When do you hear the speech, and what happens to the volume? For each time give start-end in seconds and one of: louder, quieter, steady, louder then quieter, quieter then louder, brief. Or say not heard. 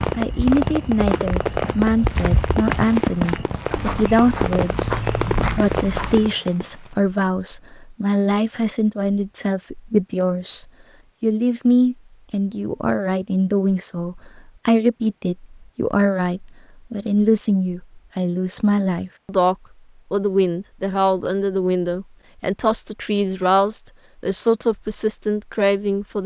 0.1-26.2 steady.